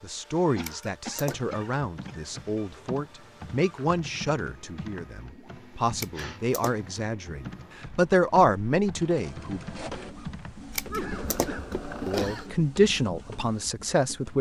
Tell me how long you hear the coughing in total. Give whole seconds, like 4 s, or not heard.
3 s.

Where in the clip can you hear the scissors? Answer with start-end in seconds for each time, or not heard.
0.6-1.6, 6.0-6.9, 10.8-12.4.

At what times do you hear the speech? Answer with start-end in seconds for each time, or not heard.
0.0-9.6, 12.1-14.3.